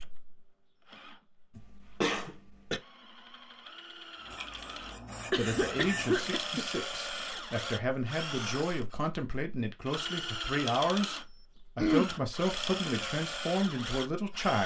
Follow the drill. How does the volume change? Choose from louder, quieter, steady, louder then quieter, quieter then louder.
louder.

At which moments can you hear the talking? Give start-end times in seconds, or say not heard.
5.3-14.6.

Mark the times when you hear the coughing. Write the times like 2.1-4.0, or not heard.
2.0-2.8, 5.3-6.7, 11.8-12.2.